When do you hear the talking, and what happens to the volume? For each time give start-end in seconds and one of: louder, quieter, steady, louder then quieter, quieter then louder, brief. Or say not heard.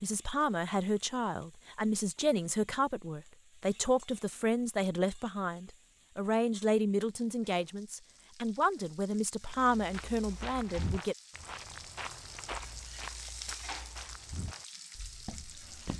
0.0-11.2 steady.